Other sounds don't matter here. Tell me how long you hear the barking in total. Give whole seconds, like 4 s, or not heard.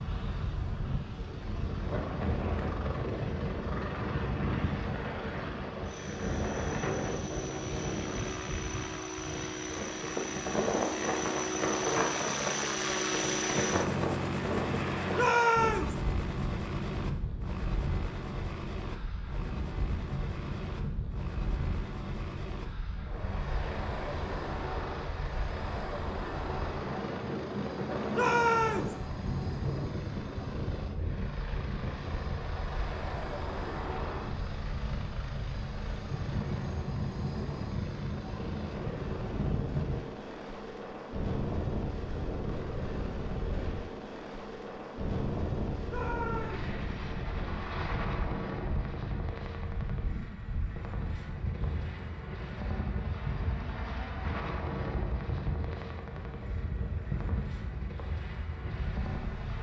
not heard.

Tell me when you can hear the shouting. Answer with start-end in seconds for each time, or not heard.
15.1-15.9, 28.1-28.9, 45.9-46.7.